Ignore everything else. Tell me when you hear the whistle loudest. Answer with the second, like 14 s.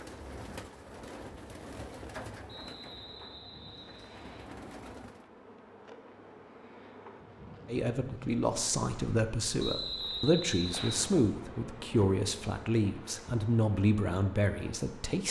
10 s.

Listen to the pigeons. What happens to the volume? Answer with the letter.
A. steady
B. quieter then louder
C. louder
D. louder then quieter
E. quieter
B.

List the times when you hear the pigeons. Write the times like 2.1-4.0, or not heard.
0.0-5.2.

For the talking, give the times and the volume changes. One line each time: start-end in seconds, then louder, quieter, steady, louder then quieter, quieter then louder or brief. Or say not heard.
7.7-15.2 steady.